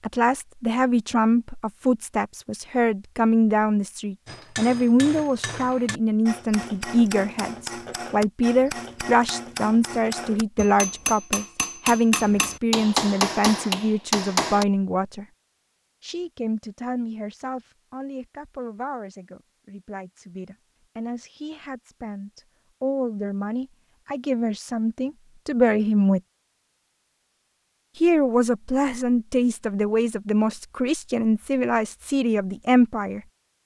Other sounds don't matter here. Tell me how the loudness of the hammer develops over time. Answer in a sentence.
The loudness of the hammer goes up.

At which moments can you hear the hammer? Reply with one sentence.
The hammer can be heard from 4.2 to 14.7 s.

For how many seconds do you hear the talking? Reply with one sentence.
The talking can be heard for 31 seconds in total.